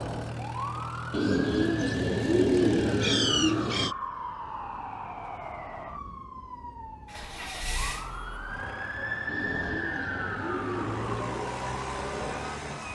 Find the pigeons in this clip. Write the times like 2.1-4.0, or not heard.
1.1-4.0, 9.2-11.2.